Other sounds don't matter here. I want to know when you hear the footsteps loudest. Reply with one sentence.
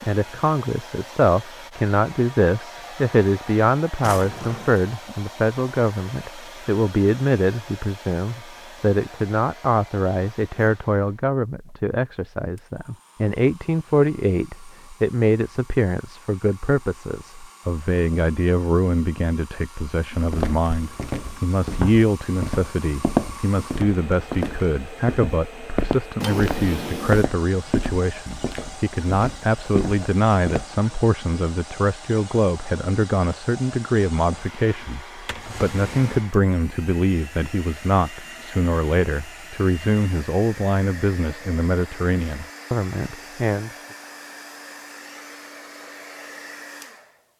The loudest moment of the footsteps is at 23 seconds.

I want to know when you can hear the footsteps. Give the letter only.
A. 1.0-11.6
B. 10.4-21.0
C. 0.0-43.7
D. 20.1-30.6
D.